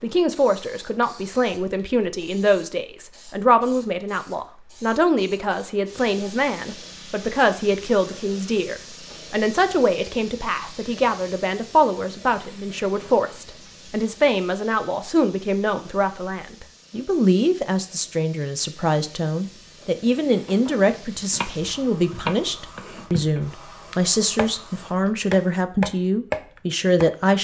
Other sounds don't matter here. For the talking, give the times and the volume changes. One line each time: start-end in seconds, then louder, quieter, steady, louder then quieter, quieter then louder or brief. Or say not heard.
0.0-27.3 steady.